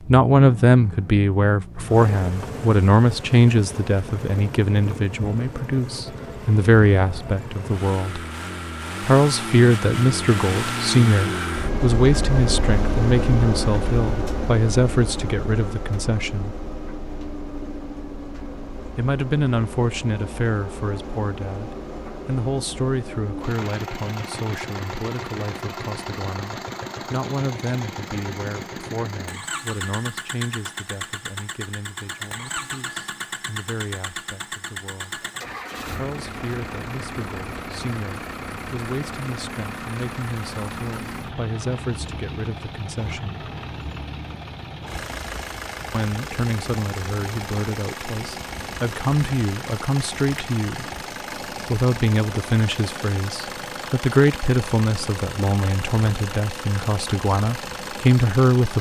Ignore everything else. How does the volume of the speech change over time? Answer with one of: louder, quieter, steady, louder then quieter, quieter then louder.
quieter then louder.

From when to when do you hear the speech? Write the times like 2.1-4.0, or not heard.
0.1-8.2, 9.0-16.6, 18.9-35.2, 35.9-43.4, 45.9-50.9, 51.6-58.7.